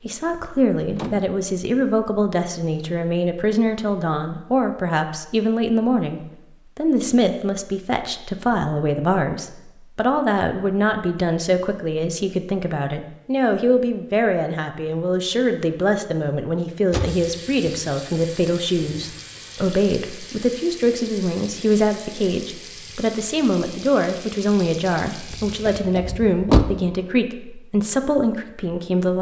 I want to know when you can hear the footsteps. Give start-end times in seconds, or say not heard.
not heard.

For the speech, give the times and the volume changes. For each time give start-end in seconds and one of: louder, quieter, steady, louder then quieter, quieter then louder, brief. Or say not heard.
0.0-29.1 steady.